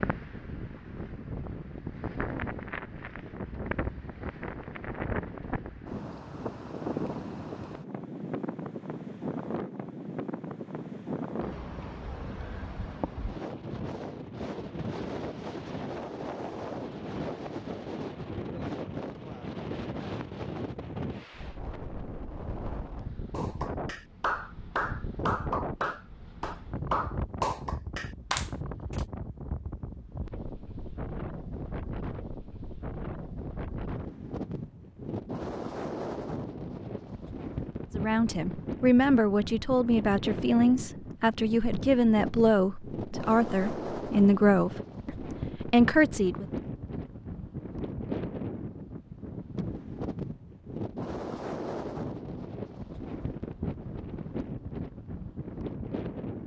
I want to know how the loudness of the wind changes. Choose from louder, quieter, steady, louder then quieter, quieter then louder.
steady.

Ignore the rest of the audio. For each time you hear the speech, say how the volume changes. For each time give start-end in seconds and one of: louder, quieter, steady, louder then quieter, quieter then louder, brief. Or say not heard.
37.9-46.5 steady.